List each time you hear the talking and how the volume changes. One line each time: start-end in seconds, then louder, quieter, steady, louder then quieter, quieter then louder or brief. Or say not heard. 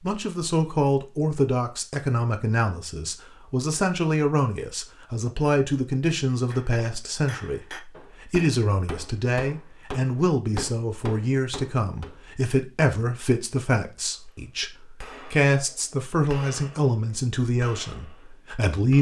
0.0-18.9 steady.